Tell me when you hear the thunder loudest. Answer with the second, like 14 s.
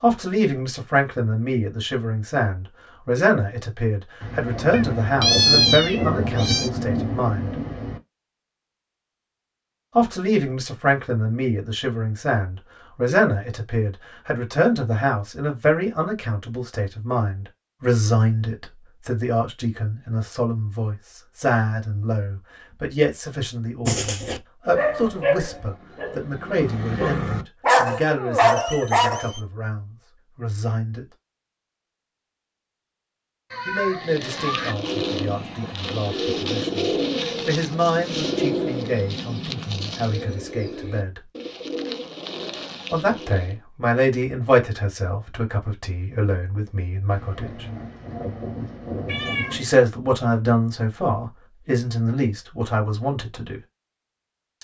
6 s.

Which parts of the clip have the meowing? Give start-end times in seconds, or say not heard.
4.7-6.7, 33.5-34.8, 49.0-49.6.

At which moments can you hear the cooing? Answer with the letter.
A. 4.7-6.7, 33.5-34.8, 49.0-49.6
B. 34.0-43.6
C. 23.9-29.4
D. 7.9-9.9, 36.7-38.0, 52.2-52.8
B.